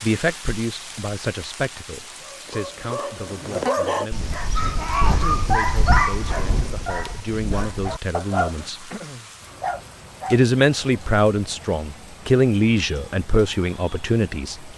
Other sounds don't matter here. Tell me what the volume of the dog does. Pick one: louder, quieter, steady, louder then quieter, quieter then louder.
quieter.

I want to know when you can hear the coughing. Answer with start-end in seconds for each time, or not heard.
not heard.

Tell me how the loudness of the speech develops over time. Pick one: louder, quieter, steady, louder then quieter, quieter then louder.
quieter then louder.